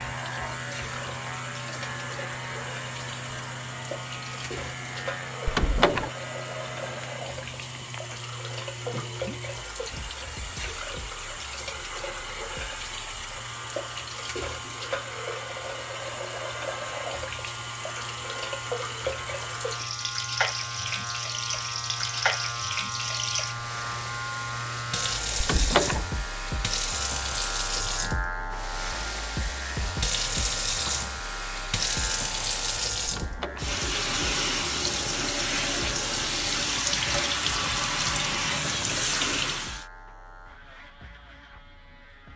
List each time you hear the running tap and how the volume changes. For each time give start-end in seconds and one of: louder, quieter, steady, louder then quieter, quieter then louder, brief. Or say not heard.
0.0-39.9 louder.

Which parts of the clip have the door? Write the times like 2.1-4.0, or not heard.
5.5-6.1, 25.4-26.1, 33.0-33.7.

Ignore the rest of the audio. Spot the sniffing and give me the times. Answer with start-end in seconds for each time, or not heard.
not heard.